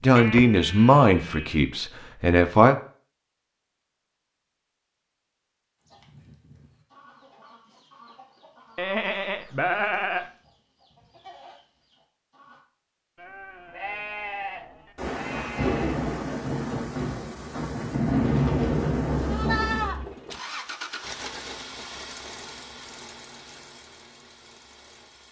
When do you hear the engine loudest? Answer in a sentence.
The loudest moment of the engine is at 21 seconds.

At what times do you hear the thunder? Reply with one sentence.
The thunder can be heard from 14.9 to 19.9 s.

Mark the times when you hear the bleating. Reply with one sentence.
The bleating can be heard from 0.1 to 1.6 s, from 8.8 to 10.2 s, from 13.2 to 15.9 s and from 19.1 to 20.1 s.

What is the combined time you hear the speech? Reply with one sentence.
You can hear the speech for 3 seconds altogether.